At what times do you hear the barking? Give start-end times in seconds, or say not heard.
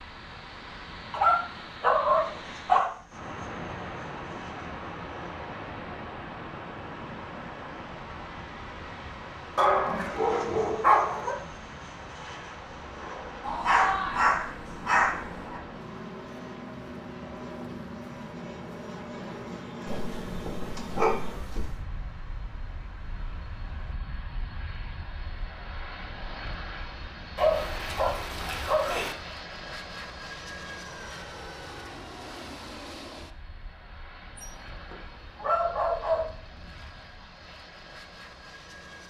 1.1-2.9, 9.6-11.4, 13.4-15.2, 19.9-21.8, 27.4-29.1, 34.4-36.3.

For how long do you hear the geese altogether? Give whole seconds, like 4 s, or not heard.
not heard.